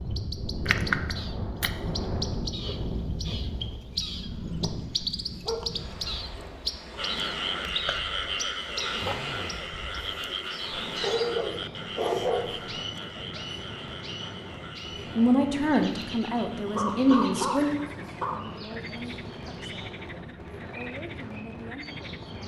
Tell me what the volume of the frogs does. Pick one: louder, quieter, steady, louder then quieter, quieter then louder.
quieter.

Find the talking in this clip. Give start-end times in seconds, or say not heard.
15.1-22.4.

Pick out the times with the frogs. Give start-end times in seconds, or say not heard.
7.0-22.3.